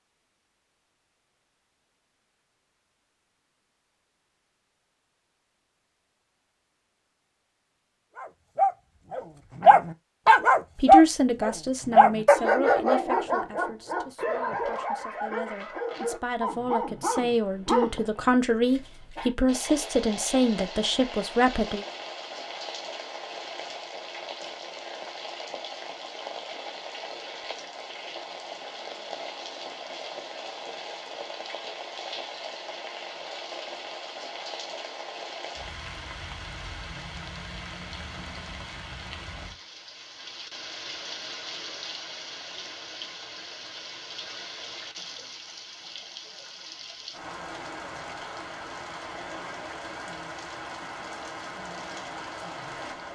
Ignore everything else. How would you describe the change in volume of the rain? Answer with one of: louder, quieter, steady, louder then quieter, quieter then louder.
steady.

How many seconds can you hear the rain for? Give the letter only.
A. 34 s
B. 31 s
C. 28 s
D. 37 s
A.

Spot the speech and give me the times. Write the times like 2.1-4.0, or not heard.
10.8-21.9.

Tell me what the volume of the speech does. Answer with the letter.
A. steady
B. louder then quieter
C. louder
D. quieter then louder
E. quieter
D.